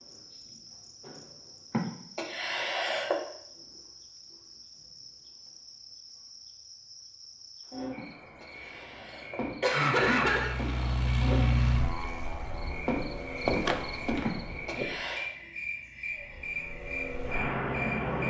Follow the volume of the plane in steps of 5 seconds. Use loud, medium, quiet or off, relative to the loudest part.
off, off, loud, loud.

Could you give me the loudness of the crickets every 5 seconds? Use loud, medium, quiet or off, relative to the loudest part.
quiet, medium, loud, loud.